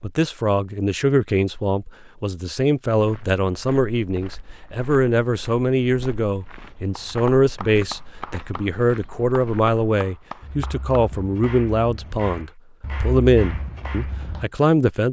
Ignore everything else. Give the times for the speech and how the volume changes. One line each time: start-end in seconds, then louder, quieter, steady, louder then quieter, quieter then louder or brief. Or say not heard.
0.0-15.0 steady.